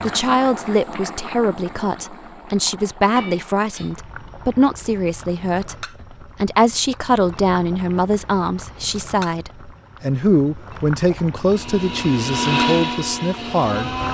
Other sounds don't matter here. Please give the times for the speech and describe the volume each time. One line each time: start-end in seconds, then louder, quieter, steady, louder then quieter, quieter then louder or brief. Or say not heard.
0.0-13.9 steady.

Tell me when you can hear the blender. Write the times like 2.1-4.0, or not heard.
11.4-14.0.